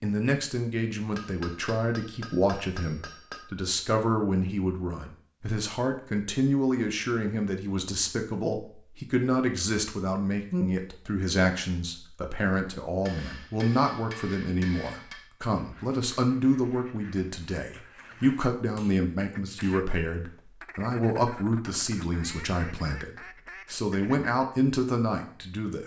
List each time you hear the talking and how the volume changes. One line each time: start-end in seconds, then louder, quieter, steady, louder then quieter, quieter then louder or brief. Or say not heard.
0.0-25.8 steady.